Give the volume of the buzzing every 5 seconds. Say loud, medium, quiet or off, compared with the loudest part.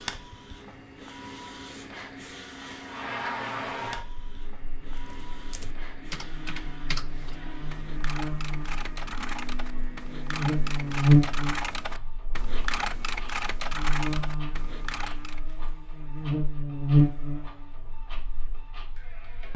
medium, quiet, loud, loud.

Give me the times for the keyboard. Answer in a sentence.
You can hear the keyboard from 5.0 to 15.5 s.